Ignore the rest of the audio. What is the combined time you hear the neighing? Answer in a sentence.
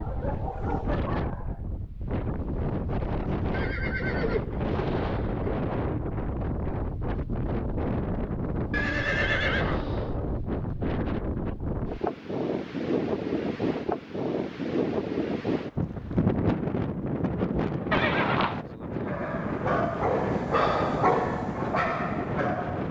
The neighing can be heard for 4 seconds in total.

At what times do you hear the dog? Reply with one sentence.
You can hear the dog from 0.0 to 1.6 s and from 19.0 to 22.8 s.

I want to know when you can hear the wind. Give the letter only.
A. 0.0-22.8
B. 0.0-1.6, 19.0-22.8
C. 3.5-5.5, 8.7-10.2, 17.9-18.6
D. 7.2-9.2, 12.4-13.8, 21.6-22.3
A.